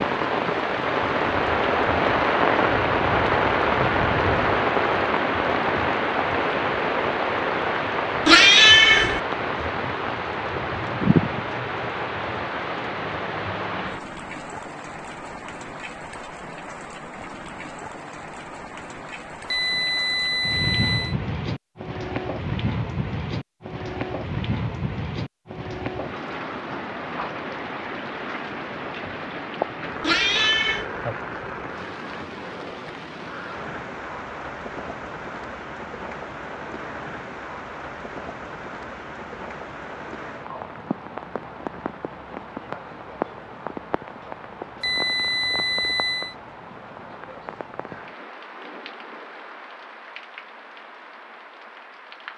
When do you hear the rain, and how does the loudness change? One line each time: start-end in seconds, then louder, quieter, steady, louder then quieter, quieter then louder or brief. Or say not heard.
0.0-52.3 quieter.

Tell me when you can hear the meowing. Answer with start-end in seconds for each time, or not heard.
8.2-9.2, 30.0-30.9.